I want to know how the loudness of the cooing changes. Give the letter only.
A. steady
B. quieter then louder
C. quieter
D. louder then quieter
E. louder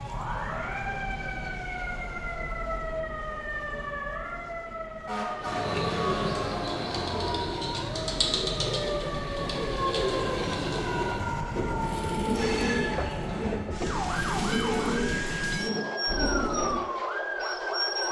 A.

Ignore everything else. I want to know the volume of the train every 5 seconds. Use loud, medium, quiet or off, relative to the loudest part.
quiet, medium, loud, loud.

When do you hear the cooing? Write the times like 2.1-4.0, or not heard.
5.4-16.8.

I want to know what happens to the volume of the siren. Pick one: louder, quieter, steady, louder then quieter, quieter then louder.
steady.